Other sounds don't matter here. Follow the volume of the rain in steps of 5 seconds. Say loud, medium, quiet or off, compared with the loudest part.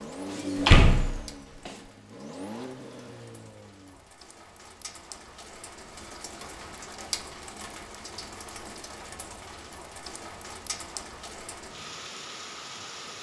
medium, loud, loud.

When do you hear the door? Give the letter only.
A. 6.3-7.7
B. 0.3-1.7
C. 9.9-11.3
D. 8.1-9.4
B.